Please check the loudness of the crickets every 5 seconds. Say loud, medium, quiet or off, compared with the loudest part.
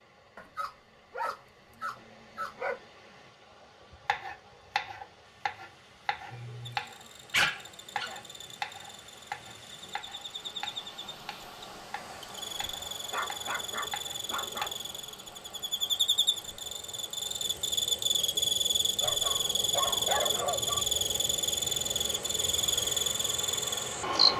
off, quiet, medium, loud, loud.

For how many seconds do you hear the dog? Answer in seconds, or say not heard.
7 s.